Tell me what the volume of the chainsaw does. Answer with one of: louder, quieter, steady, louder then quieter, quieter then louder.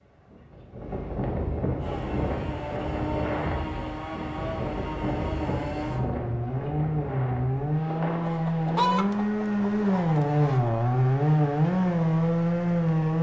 louder.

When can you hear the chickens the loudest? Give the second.
9 s.